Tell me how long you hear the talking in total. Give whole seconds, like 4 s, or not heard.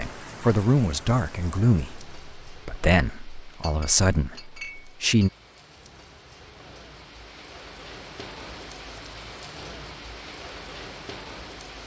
5 s.